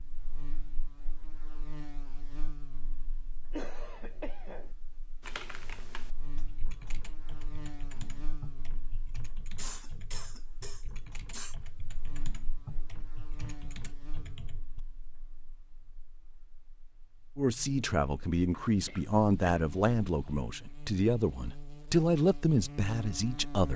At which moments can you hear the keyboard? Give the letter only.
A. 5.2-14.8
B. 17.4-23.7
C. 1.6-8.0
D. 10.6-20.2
A.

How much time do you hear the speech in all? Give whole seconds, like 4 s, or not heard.
6 s.